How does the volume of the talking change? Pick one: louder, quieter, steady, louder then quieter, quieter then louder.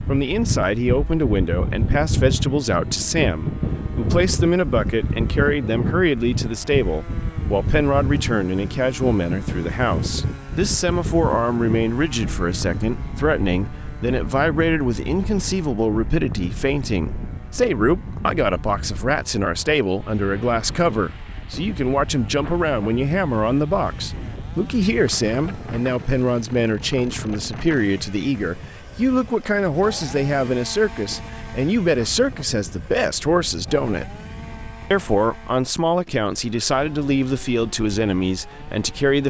steady.